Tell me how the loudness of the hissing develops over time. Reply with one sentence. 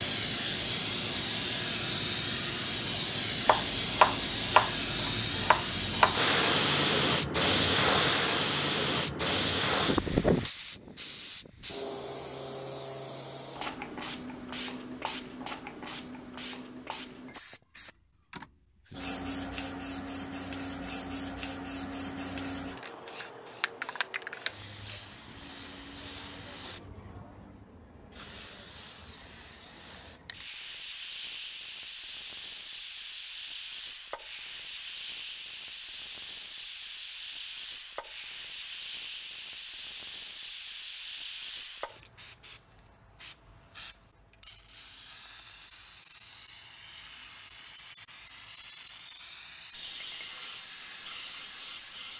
The volume of the hissing goes down.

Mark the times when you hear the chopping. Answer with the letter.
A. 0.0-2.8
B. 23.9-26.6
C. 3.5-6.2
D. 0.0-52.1
C.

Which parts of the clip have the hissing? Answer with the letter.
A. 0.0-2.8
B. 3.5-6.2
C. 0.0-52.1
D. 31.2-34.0
C.